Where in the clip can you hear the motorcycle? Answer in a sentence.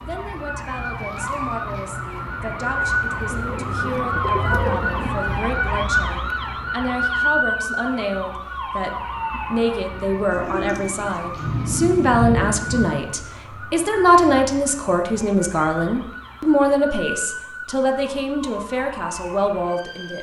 The motorcycle can't be heard in this clip.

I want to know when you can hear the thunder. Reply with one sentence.
You can hear the thunder from 11.3 to 12.9 s.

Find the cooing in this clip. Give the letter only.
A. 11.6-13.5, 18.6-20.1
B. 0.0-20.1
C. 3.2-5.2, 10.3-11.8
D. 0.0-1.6
C.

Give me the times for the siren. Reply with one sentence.
The siren can be heard from 0.0 to 20.1 s.